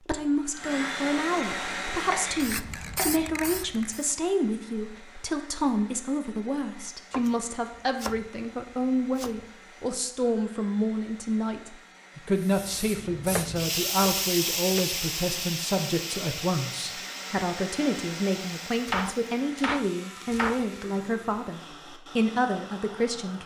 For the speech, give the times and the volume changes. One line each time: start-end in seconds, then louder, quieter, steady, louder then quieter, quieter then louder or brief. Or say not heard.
0.1-23.4 steady.